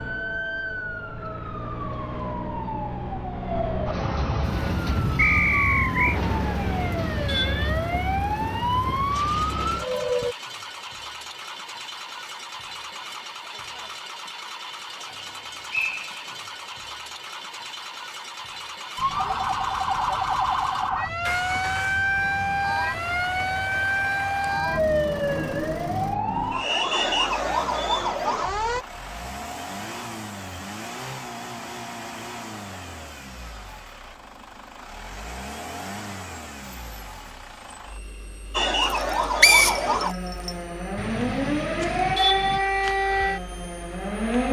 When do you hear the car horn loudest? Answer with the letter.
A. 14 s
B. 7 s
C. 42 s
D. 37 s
C.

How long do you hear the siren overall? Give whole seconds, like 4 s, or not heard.
26 s.